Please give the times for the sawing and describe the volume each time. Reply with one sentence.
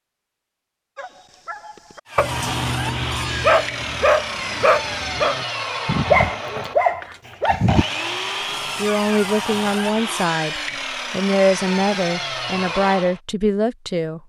You can hear the sawing from 2.0 to 13.2 s, at a steady volume.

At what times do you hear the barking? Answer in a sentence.
The barking can be heard from 0.9 to 7.8 s.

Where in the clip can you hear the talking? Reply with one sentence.
You can hear the talking from 8.8 to 14.2 s.